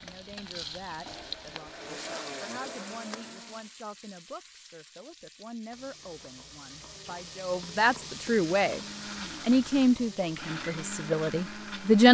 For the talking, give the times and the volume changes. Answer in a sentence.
You can hear the talking from 0.0 to 8.8 s, getting louder; and briefly from 9.4 to 12.0 s.